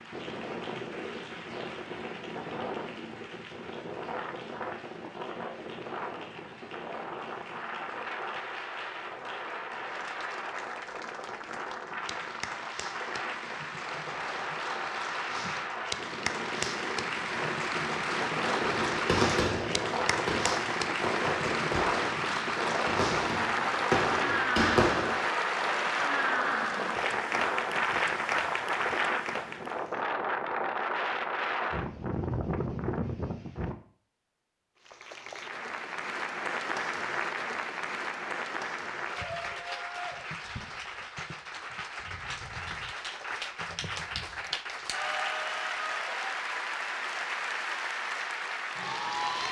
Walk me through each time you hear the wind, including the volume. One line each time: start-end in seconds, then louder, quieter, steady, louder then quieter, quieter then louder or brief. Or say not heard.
0.0-33.8 louder.